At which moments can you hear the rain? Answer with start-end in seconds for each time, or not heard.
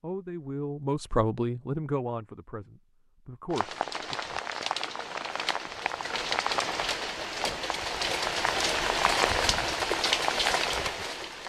3.5-11.4.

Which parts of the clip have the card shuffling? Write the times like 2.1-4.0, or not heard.
not heard.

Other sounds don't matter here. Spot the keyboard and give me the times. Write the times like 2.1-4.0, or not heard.
not heard.